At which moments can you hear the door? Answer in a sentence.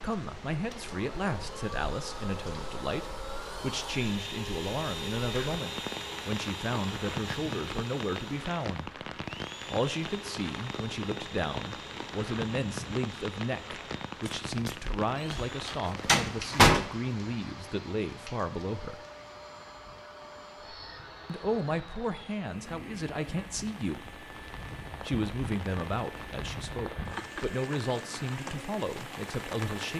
You can hear the door from 14.2 to 16.9 s.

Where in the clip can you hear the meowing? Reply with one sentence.
You can't hear the meowing here.